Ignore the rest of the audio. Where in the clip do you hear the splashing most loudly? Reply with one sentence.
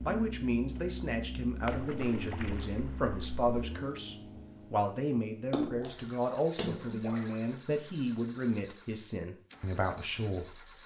The loudest moment of the splashing is at 6 seconds.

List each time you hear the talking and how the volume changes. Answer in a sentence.
You can hear the talking from 0.0 to 10.7 s, at a steady volume.